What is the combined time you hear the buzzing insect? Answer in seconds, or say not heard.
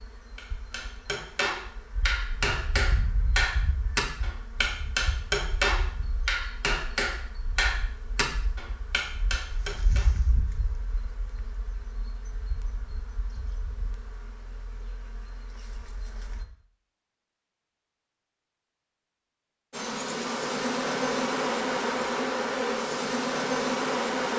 21 s.